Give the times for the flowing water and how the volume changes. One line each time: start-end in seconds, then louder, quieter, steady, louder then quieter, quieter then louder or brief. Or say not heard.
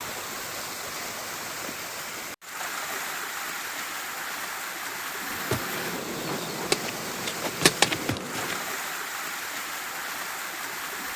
0.0-11.1 steady.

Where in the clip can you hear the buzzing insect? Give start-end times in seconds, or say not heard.
5.3-8.7.